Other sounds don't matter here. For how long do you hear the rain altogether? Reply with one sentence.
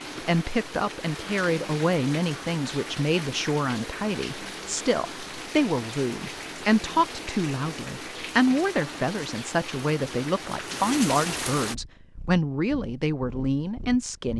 You can hear the rain for 12 seconds altogether.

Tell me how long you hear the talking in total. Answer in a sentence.
You can hear the talking for 14 seconds altogether.